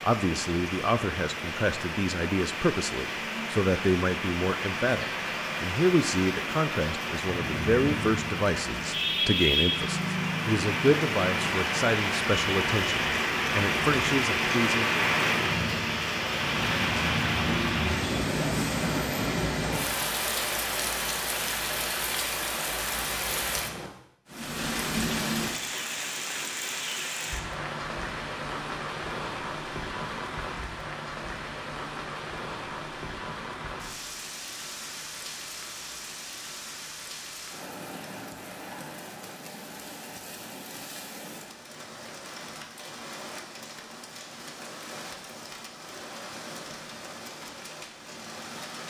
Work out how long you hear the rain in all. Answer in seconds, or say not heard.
49 s.